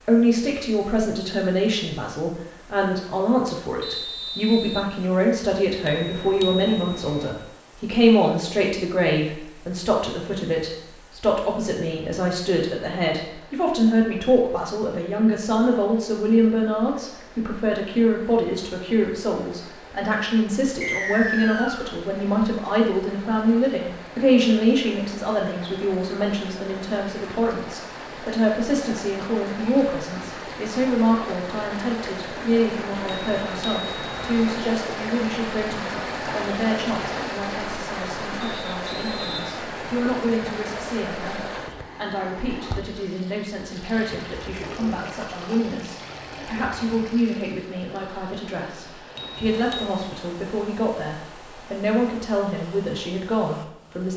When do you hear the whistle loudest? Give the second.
21 s.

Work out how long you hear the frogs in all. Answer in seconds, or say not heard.
not heard.